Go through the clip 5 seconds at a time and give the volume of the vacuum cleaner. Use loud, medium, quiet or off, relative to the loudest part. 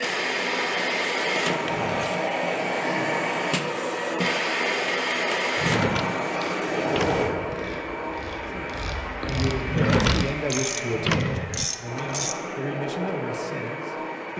loud, loud, medium.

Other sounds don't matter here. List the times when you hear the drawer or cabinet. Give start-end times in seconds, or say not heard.
1.6-2.3, 5.5-7.5, 9.7-11.7.